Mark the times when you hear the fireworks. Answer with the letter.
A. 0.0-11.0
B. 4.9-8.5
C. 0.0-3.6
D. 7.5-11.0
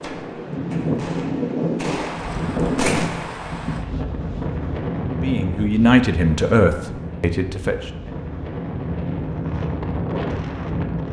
C.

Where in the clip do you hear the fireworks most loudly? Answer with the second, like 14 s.
3 s.